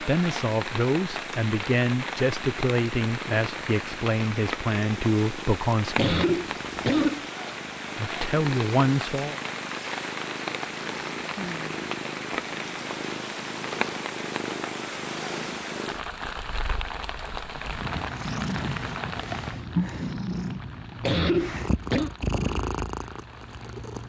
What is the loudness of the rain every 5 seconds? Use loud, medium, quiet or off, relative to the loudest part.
loud, loud, loud, loud, quiet.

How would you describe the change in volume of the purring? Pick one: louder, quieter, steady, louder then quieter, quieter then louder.
louder.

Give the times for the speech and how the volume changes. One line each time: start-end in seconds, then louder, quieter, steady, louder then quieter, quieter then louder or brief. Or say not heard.
0.0-6.2 steady
8.0-9.4 brief.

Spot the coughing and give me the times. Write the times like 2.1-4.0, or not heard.
6.0-7.3, 21.0-22.1.